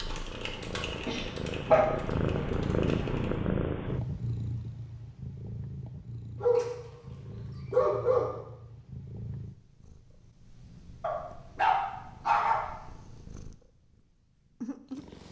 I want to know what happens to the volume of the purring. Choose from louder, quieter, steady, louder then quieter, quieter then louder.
quieter.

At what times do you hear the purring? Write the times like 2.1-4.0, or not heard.
0.0-15.2.